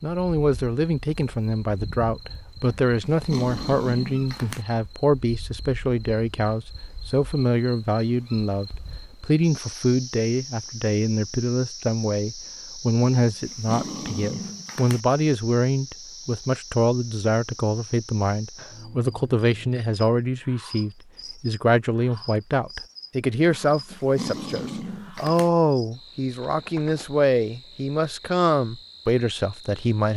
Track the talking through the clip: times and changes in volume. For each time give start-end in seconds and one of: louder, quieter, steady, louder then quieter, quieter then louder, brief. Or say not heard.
0.0-30.1 steady.